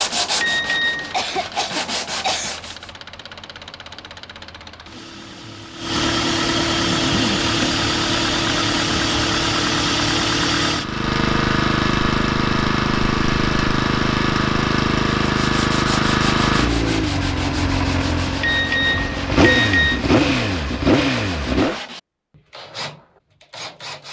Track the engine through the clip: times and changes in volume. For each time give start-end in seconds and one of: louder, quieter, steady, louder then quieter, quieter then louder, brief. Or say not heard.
0.0-21.8 louder.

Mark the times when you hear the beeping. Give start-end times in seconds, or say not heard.
0.3-1.1, 18.4-20.0.